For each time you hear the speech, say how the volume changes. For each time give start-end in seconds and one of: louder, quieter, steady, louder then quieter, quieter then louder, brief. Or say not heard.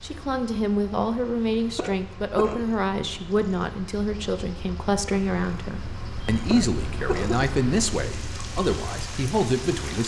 0.0-10.0 steady.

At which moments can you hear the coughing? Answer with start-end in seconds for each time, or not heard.
1.8-2.6, 6.5-7.5.